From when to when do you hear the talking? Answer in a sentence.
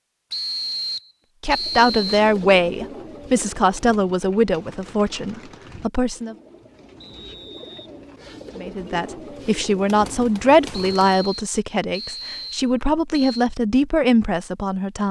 You can hear the talking from 1.4 to 6.3 s and from 8.6 to 15.0 s.